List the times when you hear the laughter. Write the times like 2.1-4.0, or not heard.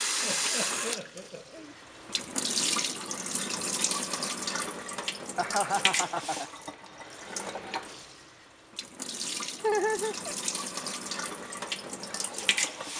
0.2-1.8, 5.3-6.5, 9.6-10.3.